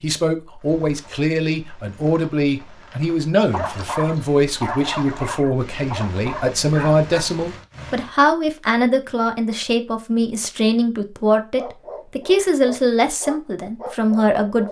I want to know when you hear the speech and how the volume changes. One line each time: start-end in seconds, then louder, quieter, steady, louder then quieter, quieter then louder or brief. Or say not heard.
0.0-14.6 steady.